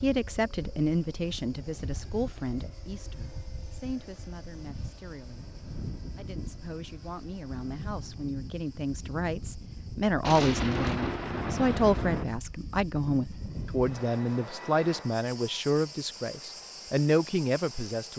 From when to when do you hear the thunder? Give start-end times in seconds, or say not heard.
10.2-12.2.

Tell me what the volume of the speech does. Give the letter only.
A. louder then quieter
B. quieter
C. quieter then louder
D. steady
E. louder
C.